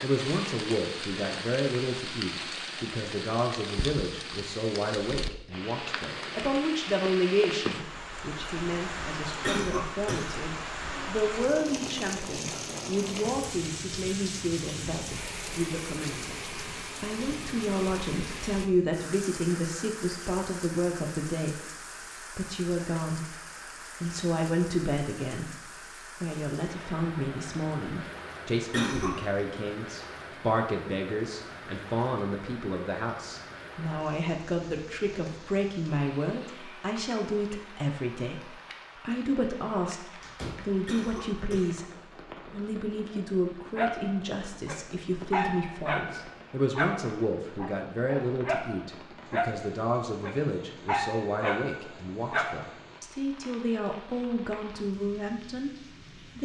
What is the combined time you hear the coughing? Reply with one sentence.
You can hear the coughing for 3 seconds altogether.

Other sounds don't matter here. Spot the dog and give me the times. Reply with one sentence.
You can hear the dog from 43.8 to 52.8 s.